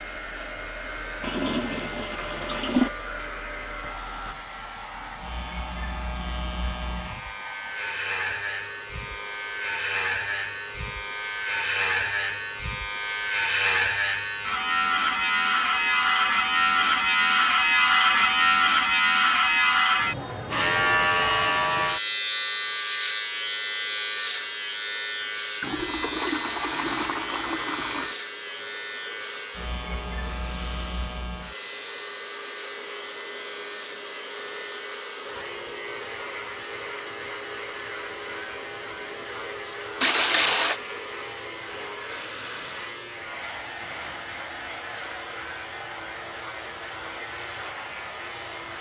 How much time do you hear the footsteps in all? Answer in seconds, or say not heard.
not heard.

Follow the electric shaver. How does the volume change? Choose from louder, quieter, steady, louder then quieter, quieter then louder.
louder then quieter.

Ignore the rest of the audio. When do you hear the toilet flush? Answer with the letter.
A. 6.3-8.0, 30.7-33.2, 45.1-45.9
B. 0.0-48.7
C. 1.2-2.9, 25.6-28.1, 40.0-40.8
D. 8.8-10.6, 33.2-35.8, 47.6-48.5
C.